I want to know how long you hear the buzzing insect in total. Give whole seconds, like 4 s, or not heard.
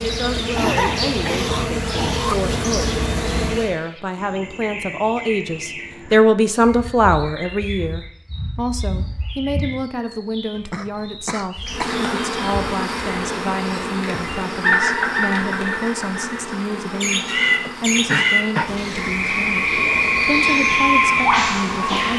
14 s.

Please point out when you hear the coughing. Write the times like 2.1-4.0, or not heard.
0.6-2.4, 10.6-12.0, 17.6-18.8.